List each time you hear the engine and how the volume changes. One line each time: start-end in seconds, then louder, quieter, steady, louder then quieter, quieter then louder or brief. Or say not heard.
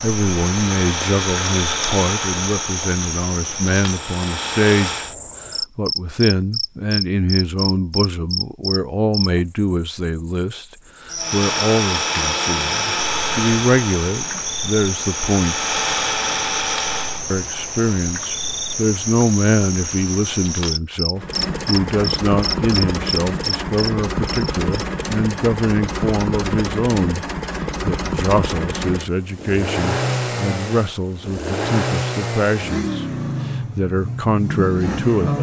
0.0-5.2 quieter then louder
11.2-17.2 quieter then louder
21.1-35.3 steady.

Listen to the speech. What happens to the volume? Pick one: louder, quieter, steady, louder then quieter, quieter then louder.
steady.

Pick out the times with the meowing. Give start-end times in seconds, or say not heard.
not heard.